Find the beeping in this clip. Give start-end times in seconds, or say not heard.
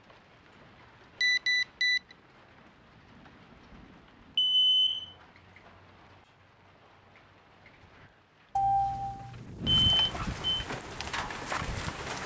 1.2-2.0, 4.3-5.1, 8.6-10.7.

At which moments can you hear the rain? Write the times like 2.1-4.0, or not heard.
0.0-12.2.